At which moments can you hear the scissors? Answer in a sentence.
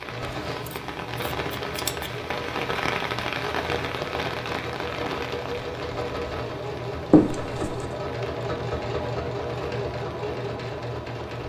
The scissors can be heard from 0.2 to 2.1 s and from 7.1 to 7.8 s.